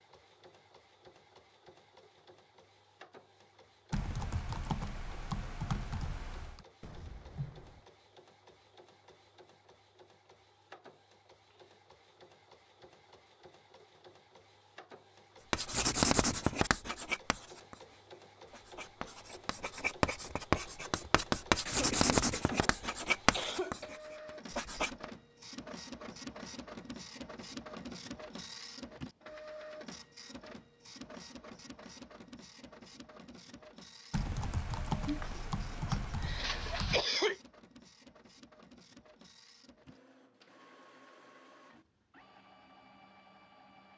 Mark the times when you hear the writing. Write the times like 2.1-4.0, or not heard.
15.5-25.1.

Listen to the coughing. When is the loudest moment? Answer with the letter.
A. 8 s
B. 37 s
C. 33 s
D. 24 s
B.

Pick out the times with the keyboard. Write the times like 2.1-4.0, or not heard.
3.9-6.7, 34.1-37.0.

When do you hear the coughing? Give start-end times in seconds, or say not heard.
6.8-7.8, 21.6-23.9, 35.0-37.4.